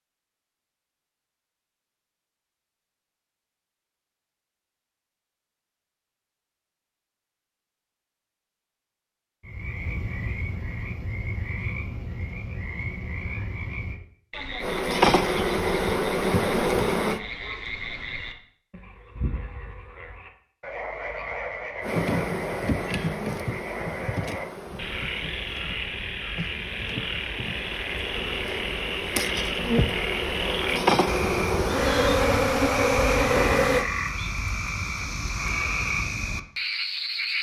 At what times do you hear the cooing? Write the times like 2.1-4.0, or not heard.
not heard.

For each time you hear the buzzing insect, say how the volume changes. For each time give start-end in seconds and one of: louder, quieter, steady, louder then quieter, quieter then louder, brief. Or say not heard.
14.6-17.2 brief
21.8-33.9 quieter then louder.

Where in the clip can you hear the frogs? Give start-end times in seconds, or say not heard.
9.4-37.3.